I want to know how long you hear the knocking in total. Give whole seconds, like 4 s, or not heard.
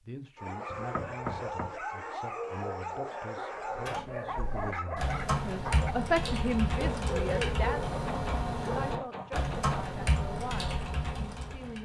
3 s.